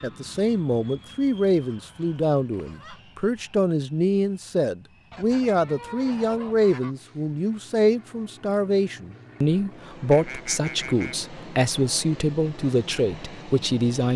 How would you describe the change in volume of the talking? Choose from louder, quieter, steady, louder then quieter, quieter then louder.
steady.